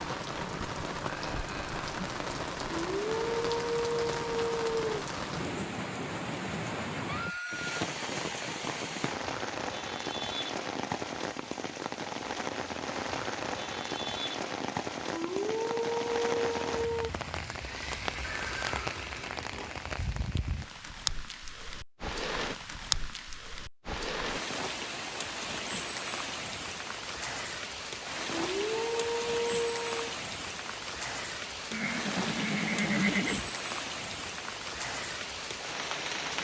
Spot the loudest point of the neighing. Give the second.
33 s.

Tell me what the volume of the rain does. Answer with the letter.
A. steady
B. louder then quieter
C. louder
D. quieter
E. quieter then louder
A.